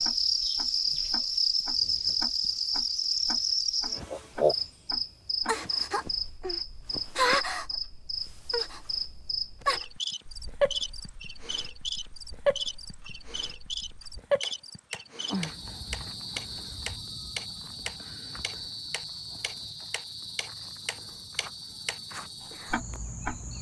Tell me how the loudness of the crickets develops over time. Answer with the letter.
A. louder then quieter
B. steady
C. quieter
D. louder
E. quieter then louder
C.